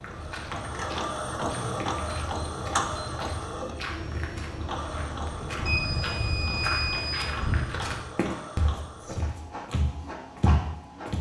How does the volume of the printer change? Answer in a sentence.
The volume of the printer goes down.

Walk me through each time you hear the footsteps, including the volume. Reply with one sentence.
The footsteps can be heard from 0.0 to 11.1 s, getting louder.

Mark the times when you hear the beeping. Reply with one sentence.
The beeping can be heard from 1.6 to 3.5 s and from 5.7 to 7.3 s.